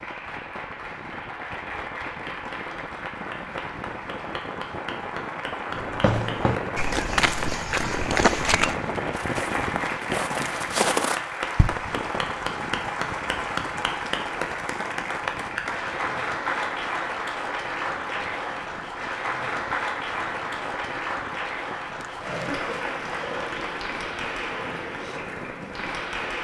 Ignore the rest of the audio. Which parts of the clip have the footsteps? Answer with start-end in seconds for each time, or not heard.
5.7-11.8.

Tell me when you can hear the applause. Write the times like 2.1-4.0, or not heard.
0.0-26.4.